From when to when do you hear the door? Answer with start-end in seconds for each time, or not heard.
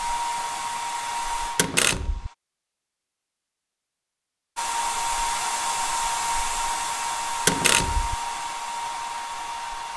1.6-2.3, 7.5-8.2.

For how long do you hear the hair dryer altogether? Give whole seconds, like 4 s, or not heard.
8 s.